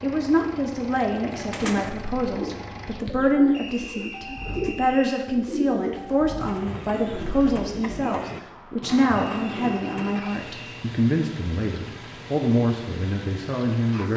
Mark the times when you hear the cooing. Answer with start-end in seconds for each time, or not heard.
1.3-10.2.